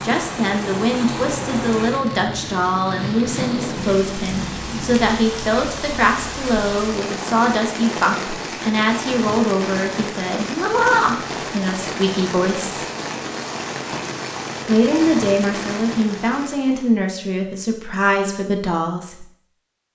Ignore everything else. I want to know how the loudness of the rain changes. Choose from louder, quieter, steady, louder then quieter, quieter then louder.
steady.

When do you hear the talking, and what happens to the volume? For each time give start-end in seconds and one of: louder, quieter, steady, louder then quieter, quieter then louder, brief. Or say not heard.
0.0-12.8 steady
14.7-19.2 steady.